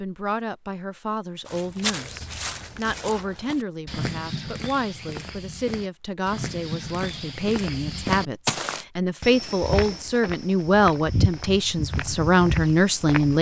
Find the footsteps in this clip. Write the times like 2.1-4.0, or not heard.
1.4-13.3.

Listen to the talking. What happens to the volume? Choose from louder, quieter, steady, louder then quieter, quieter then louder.
louder.